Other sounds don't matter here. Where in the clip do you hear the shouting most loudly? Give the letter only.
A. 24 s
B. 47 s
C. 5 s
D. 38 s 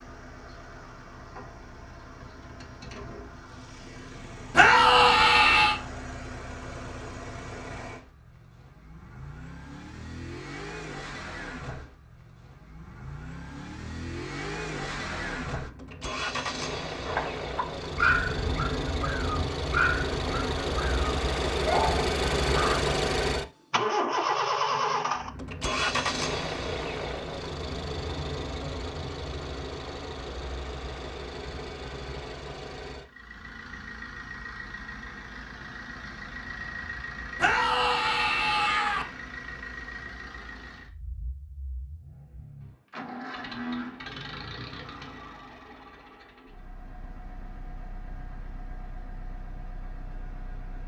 C.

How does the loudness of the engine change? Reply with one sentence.
The volume of the engine goes up, then down.